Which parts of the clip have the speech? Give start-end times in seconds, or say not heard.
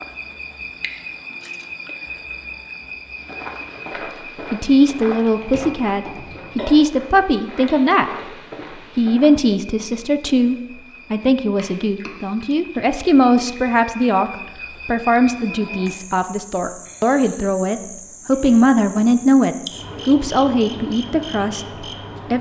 4.5-8.2, 8.9-21.6.